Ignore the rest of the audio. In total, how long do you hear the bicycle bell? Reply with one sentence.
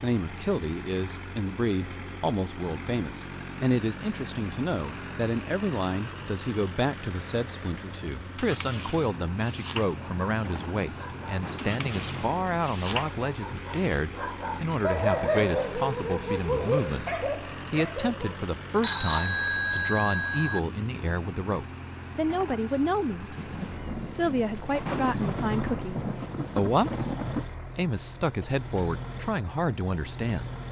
You can hear the bicycle bell for 2 seconds altogether.